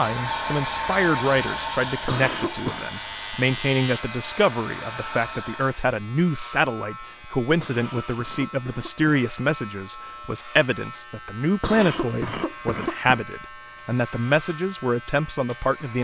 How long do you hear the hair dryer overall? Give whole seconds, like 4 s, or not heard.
6 s.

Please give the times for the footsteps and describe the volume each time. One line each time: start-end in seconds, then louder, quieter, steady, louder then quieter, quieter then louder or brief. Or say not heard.
not heard.